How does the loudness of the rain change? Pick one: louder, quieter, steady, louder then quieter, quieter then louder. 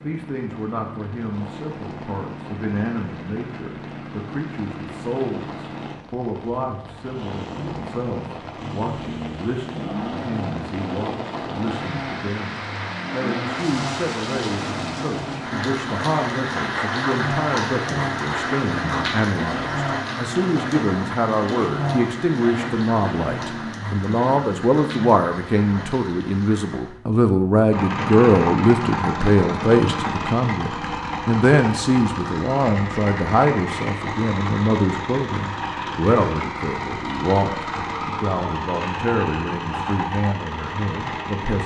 louder then quieter.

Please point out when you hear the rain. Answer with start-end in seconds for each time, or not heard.
0.1-27.0.